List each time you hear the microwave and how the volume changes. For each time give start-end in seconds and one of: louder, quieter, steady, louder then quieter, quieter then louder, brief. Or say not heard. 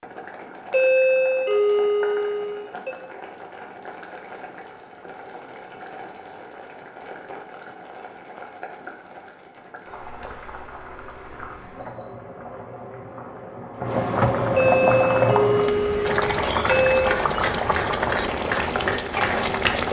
not heard.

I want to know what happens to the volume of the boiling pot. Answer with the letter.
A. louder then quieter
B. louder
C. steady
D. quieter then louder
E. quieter
B.